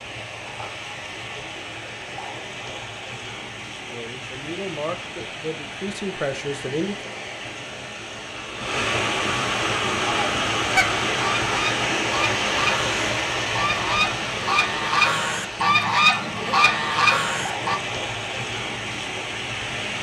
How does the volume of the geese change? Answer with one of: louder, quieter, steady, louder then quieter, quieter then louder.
louder.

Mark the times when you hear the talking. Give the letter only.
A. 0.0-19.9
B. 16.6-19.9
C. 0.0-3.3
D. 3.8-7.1
D.